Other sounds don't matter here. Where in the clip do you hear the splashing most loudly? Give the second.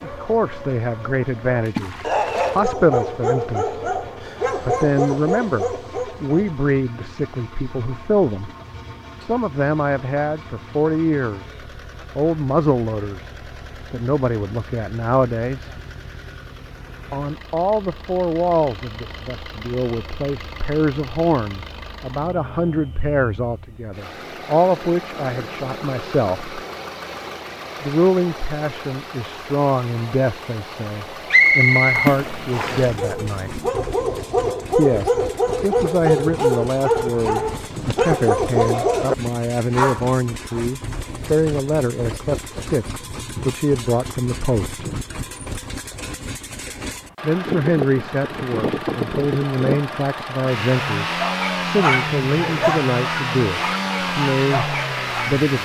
32 s.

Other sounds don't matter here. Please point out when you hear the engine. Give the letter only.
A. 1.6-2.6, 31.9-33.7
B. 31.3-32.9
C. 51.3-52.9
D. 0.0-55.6
D.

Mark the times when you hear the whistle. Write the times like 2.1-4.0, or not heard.
31.3-32.9.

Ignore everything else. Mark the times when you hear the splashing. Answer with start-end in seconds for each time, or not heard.
1.6-2.6, 31.9-33.7.